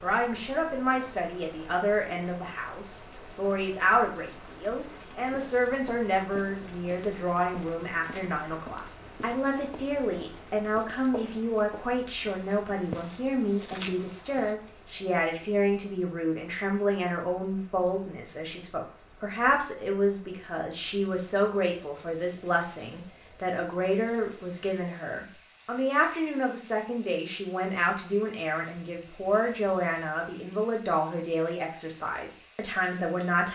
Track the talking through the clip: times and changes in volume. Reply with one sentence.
The talking can be heard from 0.0 to 33.4 s, at a steady volume.